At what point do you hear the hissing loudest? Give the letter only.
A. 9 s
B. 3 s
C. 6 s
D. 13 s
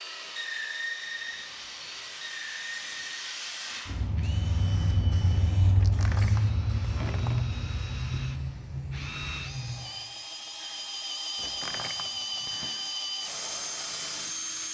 C.